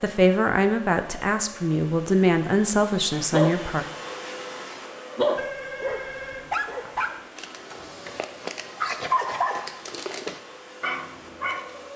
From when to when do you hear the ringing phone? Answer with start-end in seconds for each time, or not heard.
5.3-6.5.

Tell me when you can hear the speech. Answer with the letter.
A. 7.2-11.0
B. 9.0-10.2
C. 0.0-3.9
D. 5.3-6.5
C.